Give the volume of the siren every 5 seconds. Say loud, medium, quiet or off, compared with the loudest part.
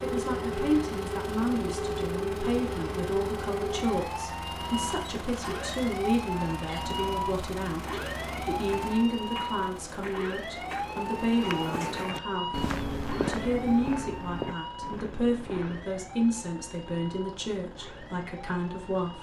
loud, loud, loud, quiet.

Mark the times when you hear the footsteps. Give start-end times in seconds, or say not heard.
7.8-15.8.